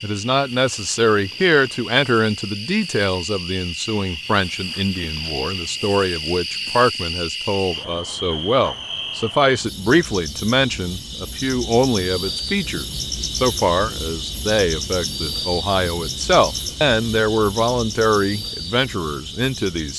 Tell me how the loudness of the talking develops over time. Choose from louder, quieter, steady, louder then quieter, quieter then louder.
steady.